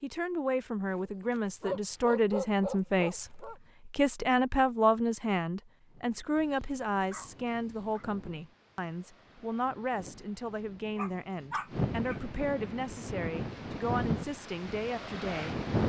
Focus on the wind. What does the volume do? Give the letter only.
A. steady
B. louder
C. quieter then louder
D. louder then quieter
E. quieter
B.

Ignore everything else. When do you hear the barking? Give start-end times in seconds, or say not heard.
0.9-3.5, 6.3-8.1, 10.9-12.2.